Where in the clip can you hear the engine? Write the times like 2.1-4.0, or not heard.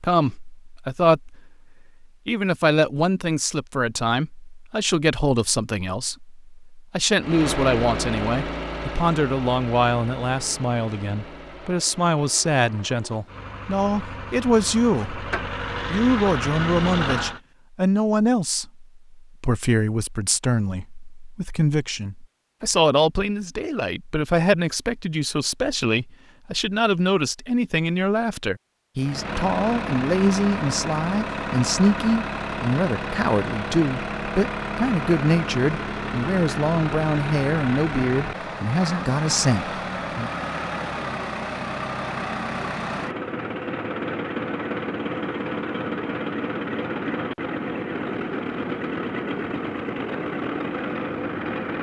7.2-17.4, 28.9-51.7.